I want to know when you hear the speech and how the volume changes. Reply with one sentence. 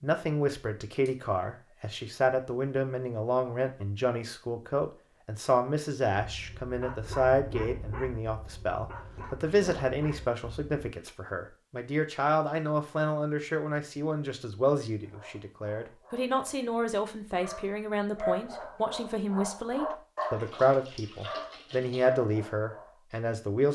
The speech can be heard from 0.0 to 23.7 s, at a steady volume.